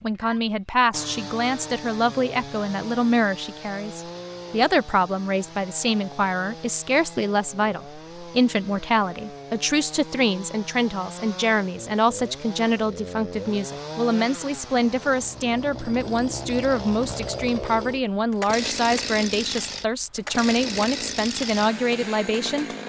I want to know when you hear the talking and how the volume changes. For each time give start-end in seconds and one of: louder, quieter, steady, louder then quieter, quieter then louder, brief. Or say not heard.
0.0-22.6 steady.